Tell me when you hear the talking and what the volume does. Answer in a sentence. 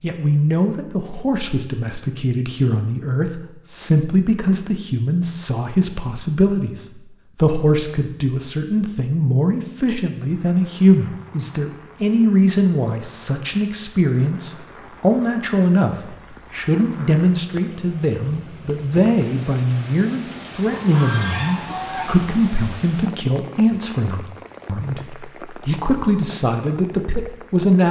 You can hear the talking from 0.0 to 27.8 s, at a steady volume.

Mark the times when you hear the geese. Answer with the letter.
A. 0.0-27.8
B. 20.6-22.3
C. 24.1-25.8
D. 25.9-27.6
B.